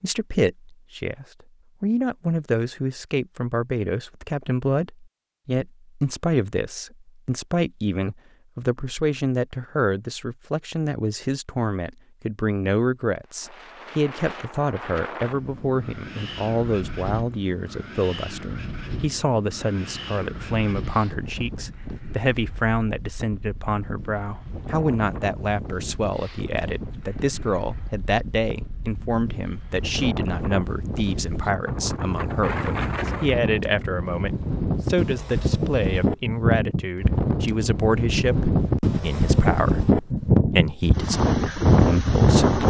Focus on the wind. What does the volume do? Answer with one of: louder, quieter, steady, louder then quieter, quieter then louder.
louder.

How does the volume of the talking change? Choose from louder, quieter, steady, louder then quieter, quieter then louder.
steady.